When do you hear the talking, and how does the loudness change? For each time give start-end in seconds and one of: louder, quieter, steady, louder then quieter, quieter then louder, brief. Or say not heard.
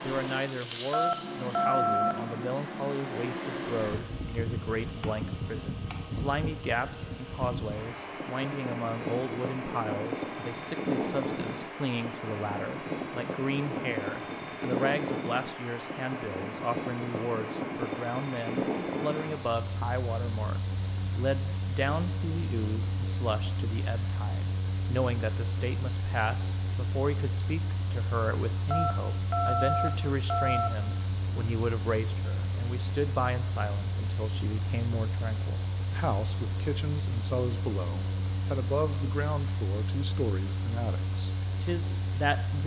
0.0-42.6 steady.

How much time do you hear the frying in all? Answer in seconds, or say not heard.
2 s.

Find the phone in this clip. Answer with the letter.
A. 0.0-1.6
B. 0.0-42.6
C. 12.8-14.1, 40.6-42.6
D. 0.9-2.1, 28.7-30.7
D.